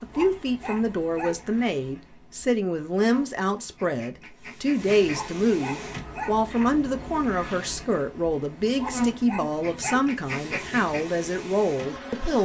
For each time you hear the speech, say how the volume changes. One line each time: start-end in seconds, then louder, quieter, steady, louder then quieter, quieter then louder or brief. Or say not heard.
0.0-12.4 steady.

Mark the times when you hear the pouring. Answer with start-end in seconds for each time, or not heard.
not heard.